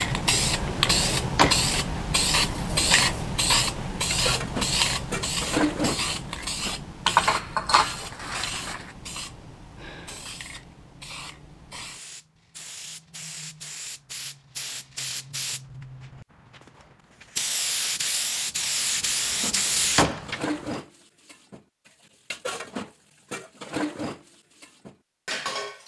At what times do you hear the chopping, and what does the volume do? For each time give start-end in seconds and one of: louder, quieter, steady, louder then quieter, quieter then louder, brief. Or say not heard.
not heard.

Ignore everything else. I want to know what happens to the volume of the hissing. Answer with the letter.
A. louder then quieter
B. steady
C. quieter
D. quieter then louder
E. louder
D.